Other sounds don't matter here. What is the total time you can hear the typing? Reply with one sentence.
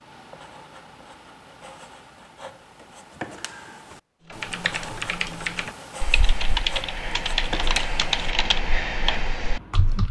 The typing can be heard for 6 seconds in total.